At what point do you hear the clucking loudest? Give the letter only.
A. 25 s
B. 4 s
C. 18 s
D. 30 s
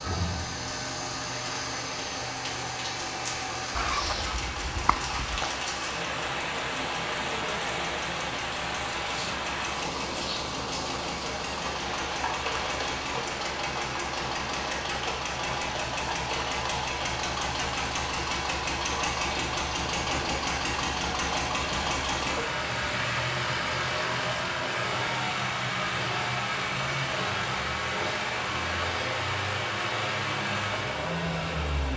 B.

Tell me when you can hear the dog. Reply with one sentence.
The dog can't be heard in this clip.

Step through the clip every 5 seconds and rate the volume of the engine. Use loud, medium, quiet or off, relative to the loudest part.
medium, medium, medium, loud, loud, loud, loud.